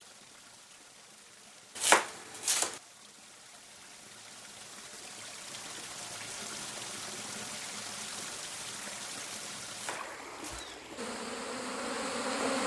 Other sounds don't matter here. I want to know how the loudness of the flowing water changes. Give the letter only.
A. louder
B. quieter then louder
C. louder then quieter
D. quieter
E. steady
A.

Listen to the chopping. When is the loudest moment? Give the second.
2 s.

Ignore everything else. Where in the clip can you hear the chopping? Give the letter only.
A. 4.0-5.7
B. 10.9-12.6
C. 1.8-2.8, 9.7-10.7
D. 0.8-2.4
C.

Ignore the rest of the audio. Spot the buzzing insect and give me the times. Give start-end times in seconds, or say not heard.
10.9-12.6.